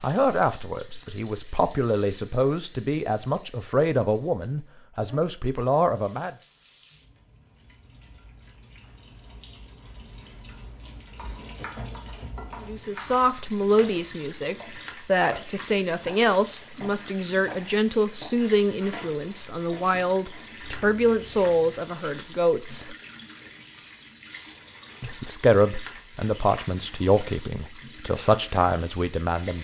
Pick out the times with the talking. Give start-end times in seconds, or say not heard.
0.0-6.3, 12.6-22.9, 25.0-29.5.